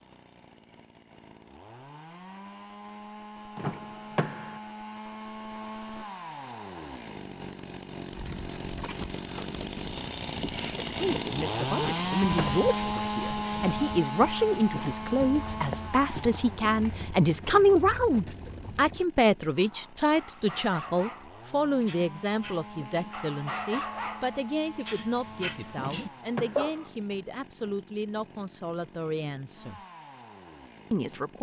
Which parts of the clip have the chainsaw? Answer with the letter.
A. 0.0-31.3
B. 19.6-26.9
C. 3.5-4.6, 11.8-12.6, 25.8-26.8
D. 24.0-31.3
A.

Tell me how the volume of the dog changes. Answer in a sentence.
The loudness of the dog goes down, then up.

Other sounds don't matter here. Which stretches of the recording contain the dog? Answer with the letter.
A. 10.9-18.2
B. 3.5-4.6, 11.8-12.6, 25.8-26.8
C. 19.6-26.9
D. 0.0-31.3
C.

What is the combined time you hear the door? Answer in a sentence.
The door can be heard for 3 seconds in total.